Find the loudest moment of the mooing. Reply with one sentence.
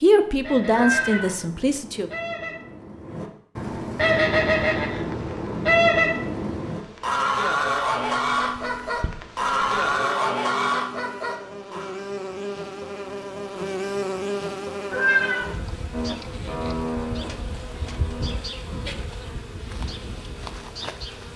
The loudest moment of the mooing is at 17 seconds.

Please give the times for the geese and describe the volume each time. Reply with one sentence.
You can hear the geese from 0.0 to 11.9 s, getting louder.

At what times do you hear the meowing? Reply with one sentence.
You can hear the meowing from 0.7 to 1.4 s and from 14.9 to 15.6 s.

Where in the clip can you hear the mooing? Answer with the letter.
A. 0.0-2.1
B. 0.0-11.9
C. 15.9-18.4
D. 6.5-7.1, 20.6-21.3
C.